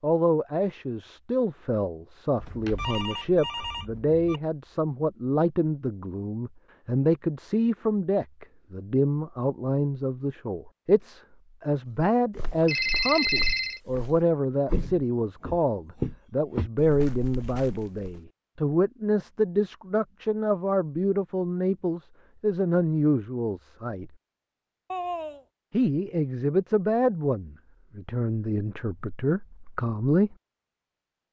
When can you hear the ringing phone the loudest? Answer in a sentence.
The loudest moment of the ringing phone is at 13 seconds.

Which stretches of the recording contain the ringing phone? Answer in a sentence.
The ringing phone can be heard from 2.4 to 4.4 s, from 12.7 to 13.8 s and from 24.9 to 25.4 s.